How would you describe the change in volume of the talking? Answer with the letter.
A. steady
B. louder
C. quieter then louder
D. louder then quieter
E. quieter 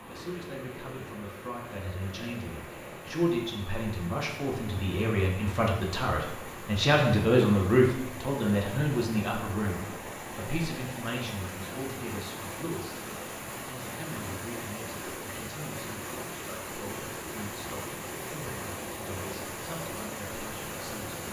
D.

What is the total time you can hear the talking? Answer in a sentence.
You can hear the talking for 21 seconds altogether.